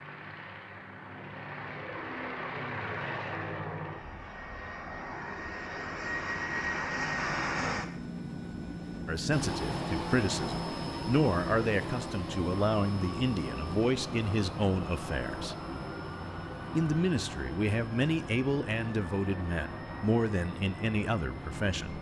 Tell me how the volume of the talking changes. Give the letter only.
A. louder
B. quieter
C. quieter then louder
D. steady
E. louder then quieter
D.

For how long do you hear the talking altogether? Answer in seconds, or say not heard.
12 s.